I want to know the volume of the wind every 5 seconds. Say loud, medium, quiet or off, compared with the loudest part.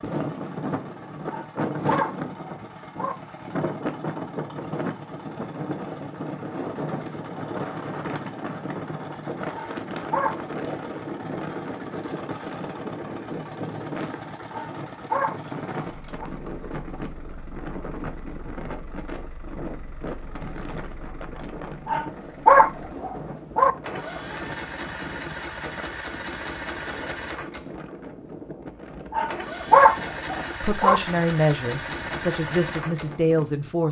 loud, loud, loud, medium, medium, medium, medium.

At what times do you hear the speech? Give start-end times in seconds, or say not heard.
30.6-33.8.